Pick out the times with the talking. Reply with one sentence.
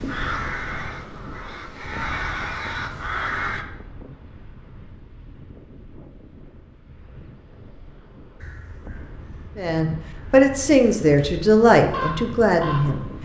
The talking can be heard from 9.6 to 13.1 s.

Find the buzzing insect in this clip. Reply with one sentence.
The buzzing insect can't be heard in this clip.